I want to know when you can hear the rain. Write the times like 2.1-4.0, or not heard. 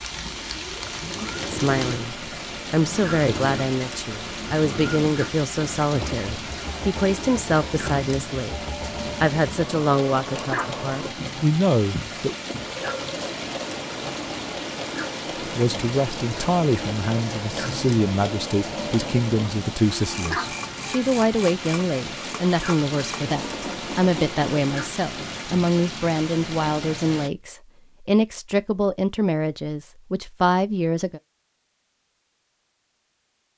0.0-27.3.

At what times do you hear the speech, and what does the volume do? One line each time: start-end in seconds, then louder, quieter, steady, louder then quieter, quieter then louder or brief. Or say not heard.
1.4-12.3 steady
15.4-31.2 steady.